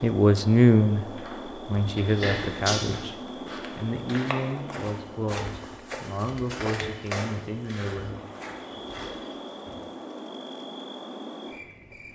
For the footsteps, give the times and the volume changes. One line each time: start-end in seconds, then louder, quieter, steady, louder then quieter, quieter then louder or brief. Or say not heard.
1.1-9.8 louder then quieter.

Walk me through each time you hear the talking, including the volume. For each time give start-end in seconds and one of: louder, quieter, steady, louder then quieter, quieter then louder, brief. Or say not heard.
0.0-8.2 quieter.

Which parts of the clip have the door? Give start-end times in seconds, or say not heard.
2.2-3.0.